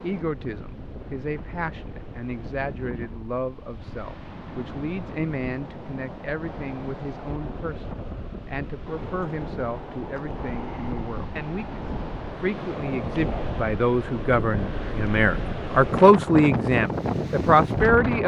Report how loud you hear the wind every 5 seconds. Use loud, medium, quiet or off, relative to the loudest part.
quiet, medium, medium, loud.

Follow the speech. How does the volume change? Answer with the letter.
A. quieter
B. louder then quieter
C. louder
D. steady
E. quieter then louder
C.